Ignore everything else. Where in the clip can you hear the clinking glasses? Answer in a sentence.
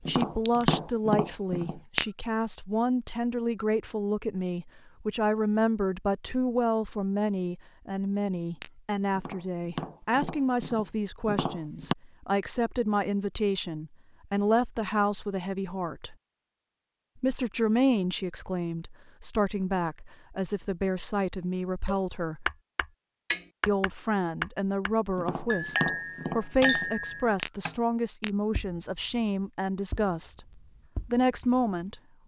You can hear the clinking glasses from 0.2 to 0.7 s and from 25.5 to 27.4 s.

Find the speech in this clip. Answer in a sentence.
The speech can be heard from 0.1 to 16.1 s, from 17.1 to 22.5 s, from 23.6 to 30.4 s and from 31.1 to 32.0 s.